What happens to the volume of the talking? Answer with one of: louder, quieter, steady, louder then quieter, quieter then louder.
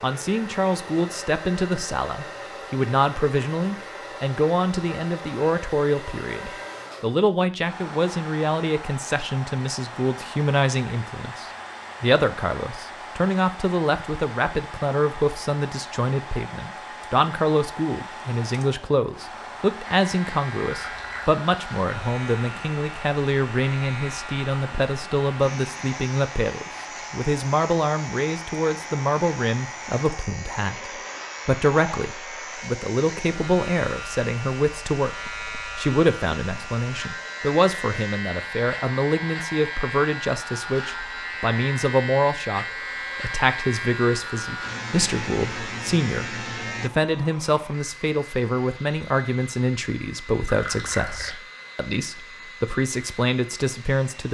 steady.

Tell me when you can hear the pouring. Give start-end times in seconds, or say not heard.
20.6-21.4, 50.5-51.4.